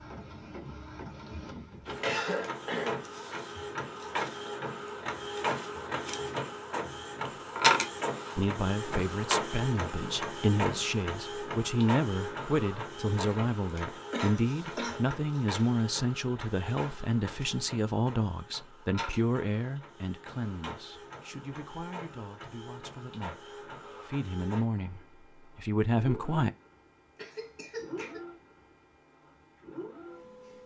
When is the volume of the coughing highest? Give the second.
2 s.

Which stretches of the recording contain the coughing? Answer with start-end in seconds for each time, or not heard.
2.0-3.0, 14.1-15.1, 27.1-28.2.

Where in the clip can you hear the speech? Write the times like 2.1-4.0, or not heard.
8.3-26.6.